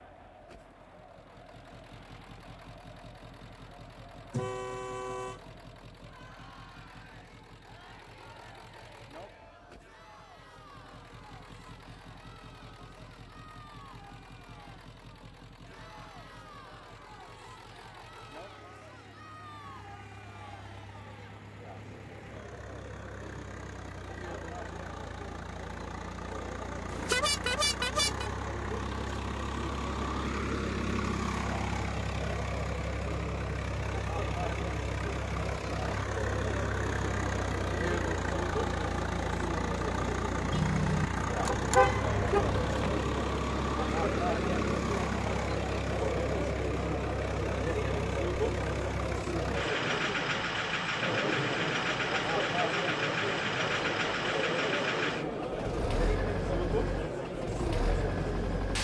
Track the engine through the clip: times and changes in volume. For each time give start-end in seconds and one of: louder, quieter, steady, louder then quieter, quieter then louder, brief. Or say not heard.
0.0-58.8 louder.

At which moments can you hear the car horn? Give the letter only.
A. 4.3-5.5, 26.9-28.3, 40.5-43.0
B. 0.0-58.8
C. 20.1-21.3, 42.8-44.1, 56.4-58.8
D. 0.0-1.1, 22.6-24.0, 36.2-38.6
A.